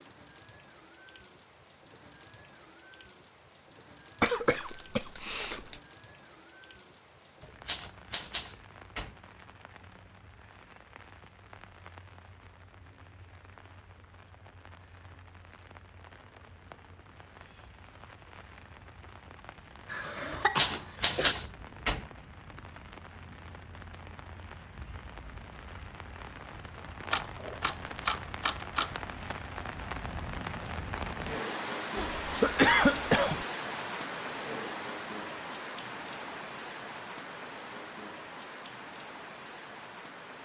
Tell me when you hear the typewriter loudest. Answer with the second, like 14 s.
21 s.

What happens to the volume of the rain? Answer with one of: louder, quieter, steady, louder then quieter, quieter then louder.
louder.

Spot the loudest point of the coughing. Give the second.
33 s.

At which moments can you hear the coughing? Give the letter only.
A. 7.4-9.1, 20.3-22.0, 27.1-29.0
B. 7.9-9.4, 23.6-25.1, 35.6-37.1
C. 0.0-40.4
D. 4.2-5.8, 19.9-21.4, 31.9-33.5
D.